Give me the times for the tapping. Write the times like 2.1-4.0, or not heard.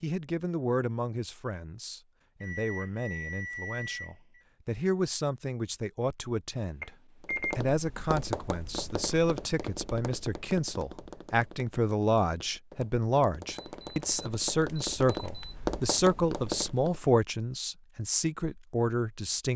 7.2-17.0.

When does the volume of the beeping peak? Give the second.
7 s.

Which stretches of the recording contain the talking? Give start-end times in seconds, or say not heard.
0.0-6.9, 7.5-19.5.